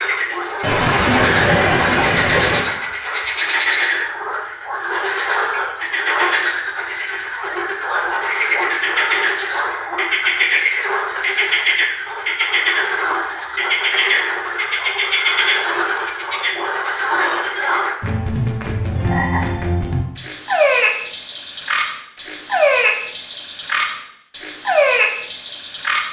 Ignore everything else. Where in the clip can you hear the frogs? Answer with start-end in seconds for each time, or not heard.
0.0-26.0.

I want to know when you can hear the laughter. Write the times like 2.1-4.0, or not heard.
0.6-2.7.